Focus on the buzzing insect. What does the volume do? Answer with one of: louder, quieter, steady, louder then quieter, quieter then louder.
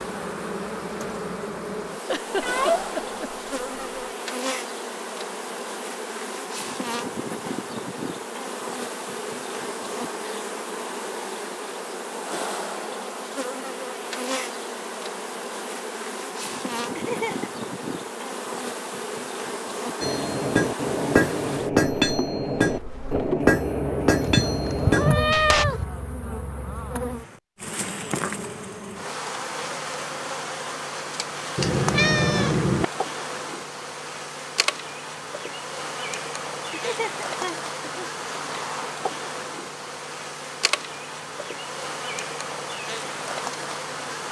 steady.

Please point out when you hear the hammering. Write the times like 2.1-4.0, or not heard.
20.0-25.6.